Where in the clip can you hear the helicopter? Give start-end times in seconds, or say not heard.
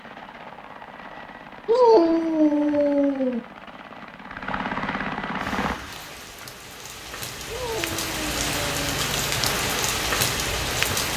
0.0-5.8.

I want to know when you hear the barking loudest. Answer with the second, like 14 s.
2 s.